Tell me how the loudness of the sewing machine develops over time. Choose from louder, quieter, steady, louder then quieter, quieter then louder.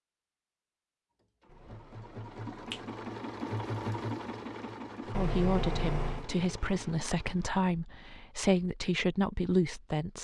louder then quieter.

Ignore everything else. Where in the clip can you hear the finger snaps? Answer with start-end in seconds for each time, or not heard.
1.5-2.9, 5.1-6.2.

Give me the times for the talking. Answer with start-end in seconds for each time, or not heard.
5.0-10.1.